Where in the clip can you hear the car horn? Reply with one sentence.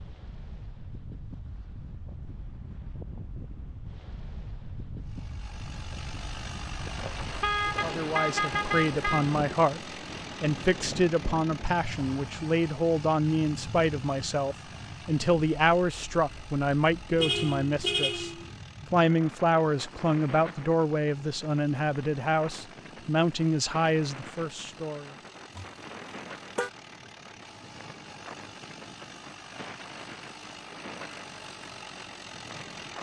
You can hear the car horn from 7.0 to 9.3 s, from 17.1 to 18.5 s and from 25.6 to 26.7 s.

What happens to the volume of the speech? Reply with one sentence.
The volume of the speech stays about the same.